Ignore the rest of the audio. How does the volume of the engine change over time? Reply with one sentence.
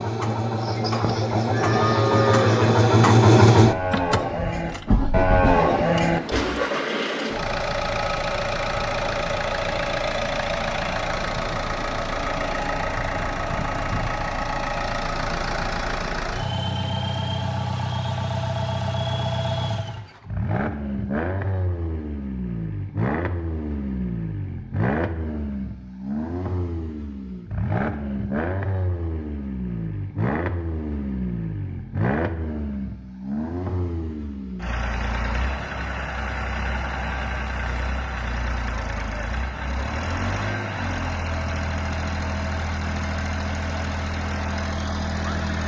The loudness of the engine goes down.